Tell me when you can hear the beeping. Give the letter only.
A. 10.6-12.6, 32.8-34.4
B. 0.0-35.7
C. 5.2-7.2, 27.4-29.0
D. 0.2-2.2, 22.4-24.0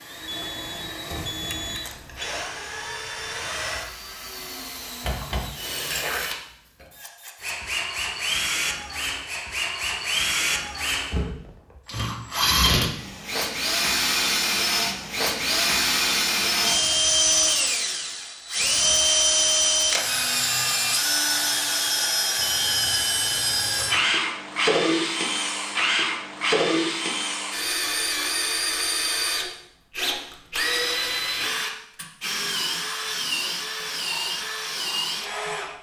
D.